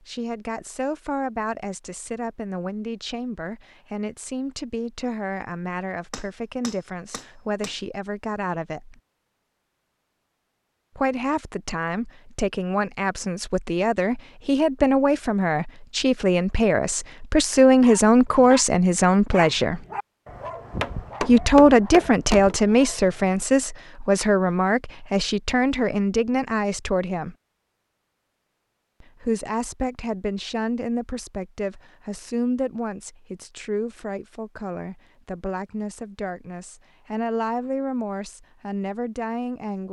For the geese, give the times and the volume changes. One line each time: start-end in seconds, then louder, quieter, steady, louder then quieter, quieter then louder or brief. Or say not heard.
not heard.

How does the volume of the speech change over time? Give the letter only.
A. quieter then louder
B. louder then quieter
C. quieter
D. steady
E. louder
B.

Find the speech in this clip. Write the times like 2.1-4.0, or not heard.
0.0-8.9, 10.9-19.8, 21.2-27.4, 29.0-39.8.